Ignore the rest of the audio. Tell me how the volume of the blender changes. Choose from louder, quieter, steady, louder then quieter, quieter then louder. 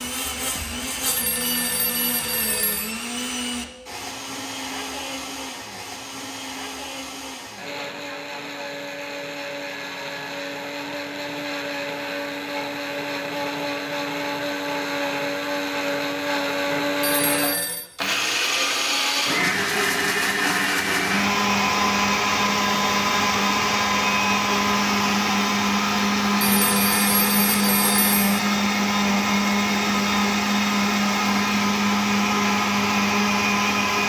louder.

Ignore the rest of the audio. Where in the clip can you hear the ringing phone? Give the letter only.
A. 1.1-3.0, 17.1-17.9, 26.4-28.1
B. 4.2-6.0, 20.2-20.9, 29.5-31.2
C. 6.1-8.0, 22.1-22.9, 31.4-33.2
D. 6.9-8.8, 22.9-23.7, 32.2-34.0
A.